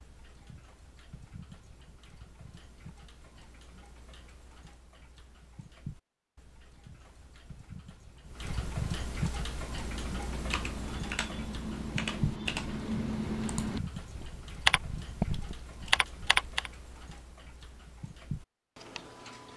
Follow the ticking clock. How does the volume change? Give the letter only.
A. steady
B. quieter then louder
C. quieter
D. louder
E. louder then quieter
E.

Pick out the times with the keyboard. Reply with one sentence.
You can hear the keyboard from 9.2 to 16.7 s.